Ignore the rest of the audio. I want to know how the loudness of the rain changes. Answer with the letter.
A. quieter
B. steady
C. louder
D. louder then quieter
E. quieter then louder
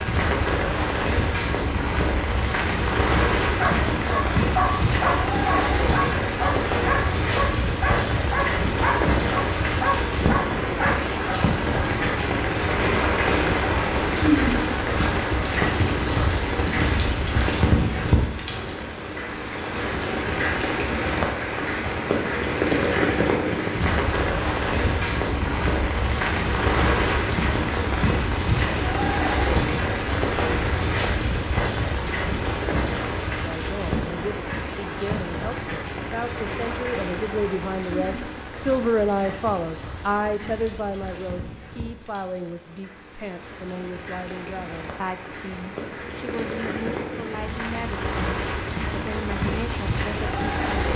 A.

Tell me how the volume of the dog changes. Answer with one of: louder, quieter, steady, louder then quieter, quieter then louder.
steady.